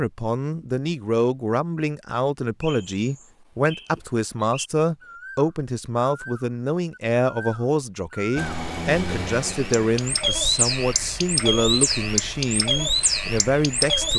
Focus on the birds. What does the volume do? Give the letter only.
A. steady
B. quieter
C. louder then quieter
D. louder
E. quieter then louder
D.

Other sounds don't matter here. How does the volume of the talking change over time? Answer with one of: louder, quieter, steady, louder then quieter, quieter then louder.
steady.